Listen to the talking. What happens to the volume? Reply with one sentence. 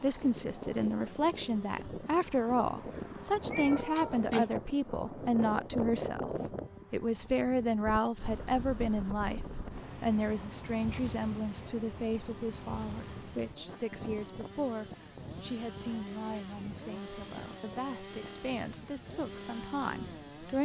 The loudness of the talking goes down.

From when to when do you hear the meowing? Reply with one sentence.
The meowing can be heard from 3.5 to 4.5 s.